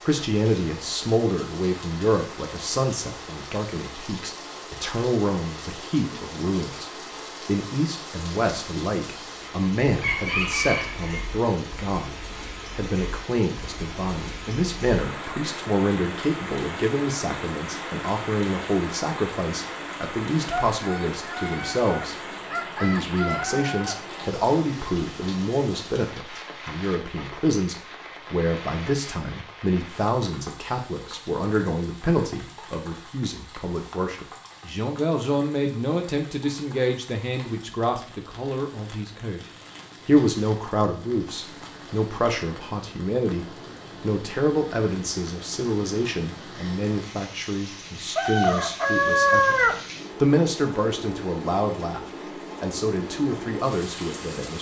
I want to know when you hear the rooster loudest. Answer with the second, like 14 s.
49 s.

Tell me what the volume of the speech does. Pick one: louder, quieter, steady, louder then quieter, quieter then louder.
steady.